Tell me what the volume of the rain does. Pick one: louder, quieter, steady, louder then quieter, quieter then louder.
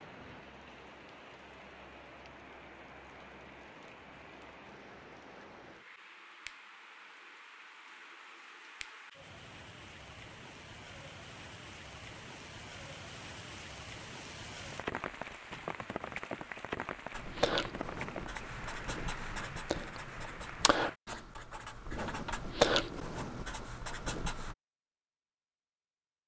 louder.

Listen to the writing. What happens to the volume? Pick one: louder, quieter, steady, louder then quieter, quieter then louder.
louder then quieter.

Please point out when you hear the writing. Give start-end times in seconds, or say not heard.
17.1-24.6.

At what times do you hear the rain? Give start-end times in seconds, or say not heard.
0.0-21.0.